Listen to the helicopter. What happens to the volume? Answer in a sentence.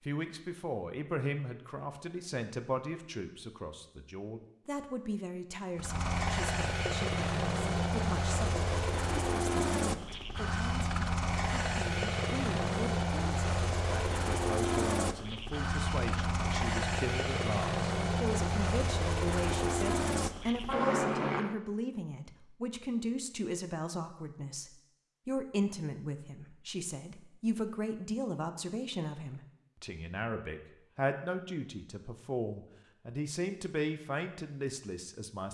The loudness of the helicopter stays about the same.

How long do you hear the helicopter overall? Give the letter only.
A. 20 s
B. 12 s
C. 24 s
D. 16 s
D.